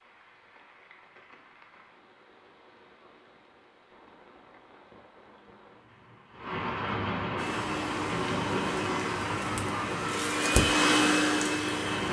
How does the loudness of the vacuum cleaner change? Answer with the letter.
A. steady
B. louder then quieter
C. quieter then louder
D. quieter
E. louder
E.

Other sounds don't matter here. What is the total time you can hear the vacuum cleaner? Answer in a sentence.
The vacuum cleaner can be heard for 5 seconds in total.